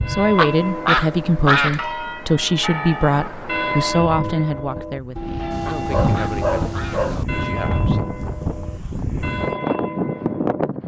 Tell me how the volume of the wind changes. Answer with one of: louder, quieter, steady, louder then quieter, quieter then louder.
louder.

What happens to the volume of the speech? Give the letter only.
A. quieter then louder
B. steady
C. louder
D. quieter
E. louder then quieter
D.